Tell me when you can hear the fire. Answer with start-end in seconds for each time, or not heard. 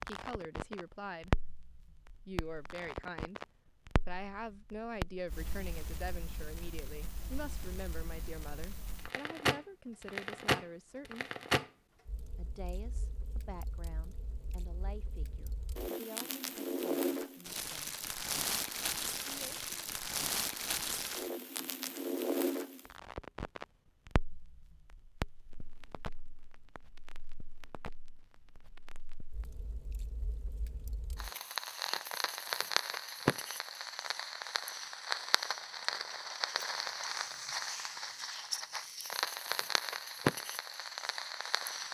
0.0-41.8.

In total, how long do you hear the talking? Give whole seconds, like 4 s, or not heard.
17 s.